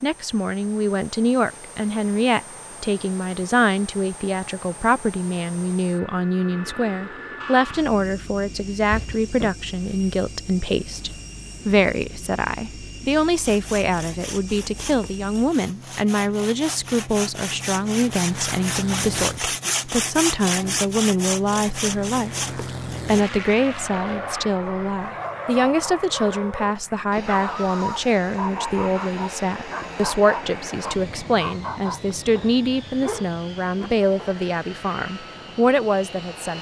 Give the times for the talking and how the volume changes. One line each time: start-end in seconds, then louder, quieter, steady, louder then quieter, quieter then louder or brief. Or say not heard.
0.0-36.5 steady.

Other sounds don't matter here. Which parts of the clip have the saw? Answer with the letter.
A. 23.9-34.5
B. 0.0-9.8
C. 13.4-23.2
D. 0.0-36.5
C.